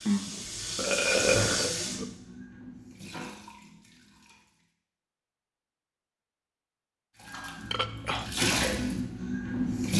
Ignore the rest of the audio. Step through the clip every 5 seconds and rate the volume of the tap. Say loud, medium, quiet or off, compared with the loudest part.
medium, loud.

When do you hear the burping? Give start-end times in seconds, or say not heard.
0.1-2.0, 7.7-8.3.